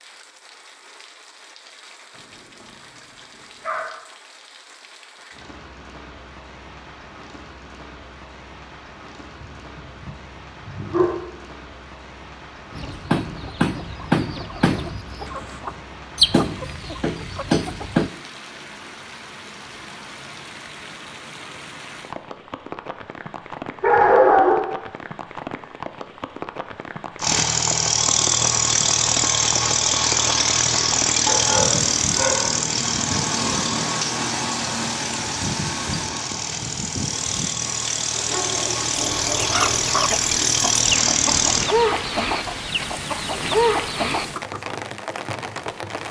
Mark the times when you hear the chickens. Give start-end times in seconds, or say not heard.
12.7-18.1, 39.4-44.6.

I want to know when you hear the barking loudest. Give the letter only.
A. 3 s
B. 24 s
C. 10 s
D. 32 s
B.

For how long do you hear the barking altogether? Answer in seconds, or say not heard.
7 s.